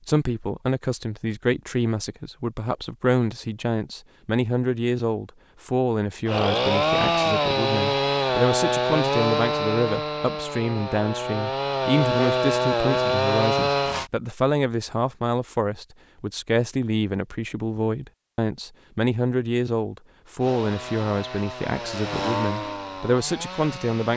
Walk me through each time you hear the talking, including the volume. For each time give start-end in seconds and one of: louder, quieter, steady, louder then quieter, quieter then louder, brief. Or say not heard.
0.1-24.1 steady.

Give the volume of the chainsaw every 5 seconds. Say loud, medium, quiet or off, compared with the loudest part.
off, loud, loud, off, medium.